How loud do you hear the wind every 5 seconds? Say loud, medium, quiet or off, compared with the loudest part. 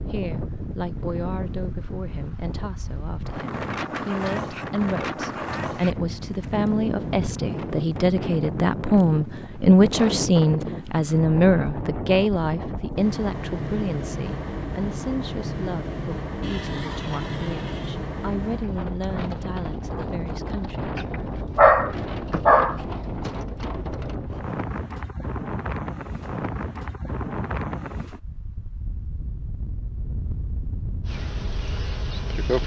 loud, loud, loud, loud, loud, loud, medium.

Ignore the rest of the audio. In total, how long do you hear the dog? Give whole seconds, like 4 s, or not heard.
2 s.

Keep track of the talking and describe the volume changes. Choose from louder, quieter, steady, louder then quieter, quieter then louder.
louder then quieter.